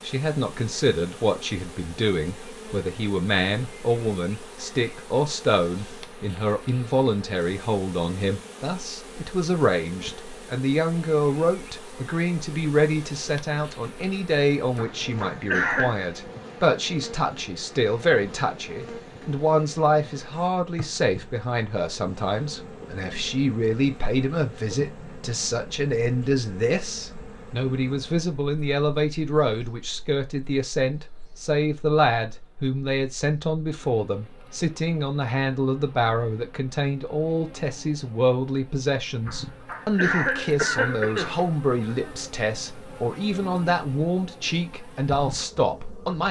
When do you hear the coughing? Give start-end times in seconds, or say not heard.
14.8-16.0, 39.2-41.5.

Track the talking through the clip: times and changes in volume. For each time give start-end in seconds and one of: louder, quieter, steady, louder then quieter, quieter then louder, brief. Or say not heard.
0.0-46.2 steady.